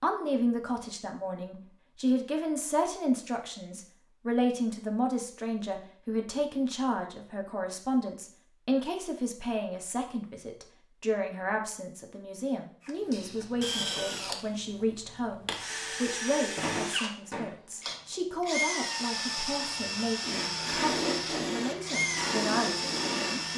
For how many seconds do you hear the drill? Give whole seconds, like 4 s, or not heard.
11 s.